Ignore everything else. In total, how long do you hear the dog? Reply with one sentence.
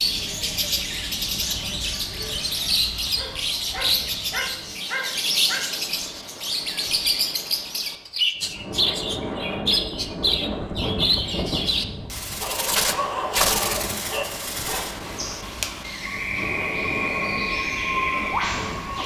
The dog can be heard for 5 seconds in total.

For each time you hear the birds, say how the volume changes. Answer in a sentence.
You can hear the birds from 0.0 to 19.0 s, at a steady volume.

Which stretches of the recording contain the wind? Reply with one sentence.
The wind can be heard from 0.0 to 19.0 s.